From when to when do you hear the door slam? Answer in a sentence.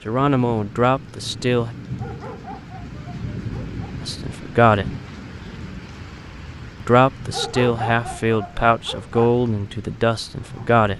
You can't hear the door slam here.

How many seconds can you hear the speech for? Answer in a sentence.
You can hear the speech for 7 seconds altogether.